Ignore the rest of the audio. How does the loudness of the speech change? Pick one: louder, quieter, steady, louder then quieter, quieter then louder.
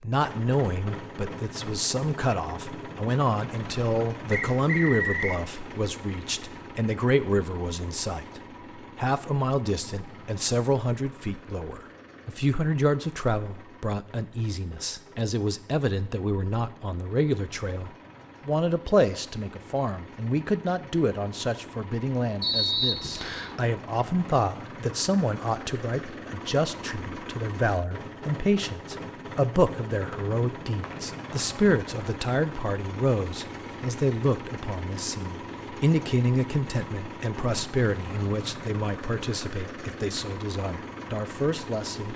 steady.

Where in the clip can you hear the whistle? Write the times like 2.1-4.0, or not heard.
4.3-5.3, 22.4-23.6, 30.1-31.1.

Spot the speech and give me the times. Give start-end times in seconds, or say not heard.
0.0-42.1.